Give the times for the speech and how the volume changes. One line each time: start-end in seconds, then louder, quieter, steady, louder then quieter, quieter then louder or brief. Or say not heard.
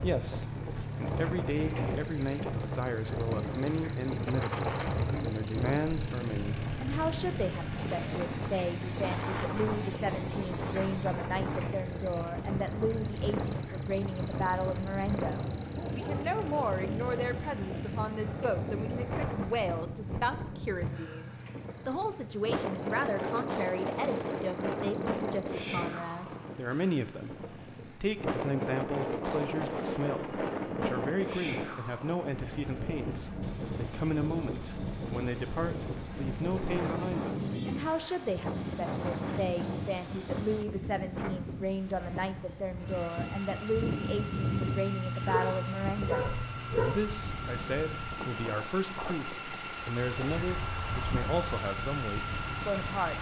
0.0-53.1 steady.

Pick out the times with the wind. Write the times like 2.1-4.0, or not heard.
0.0-53.1.